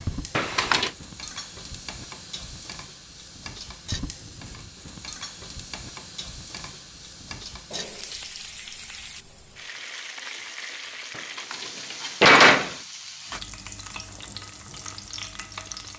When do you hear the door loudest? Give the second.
12 s.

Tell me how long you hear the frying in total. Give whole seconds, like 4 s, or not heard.
16 s.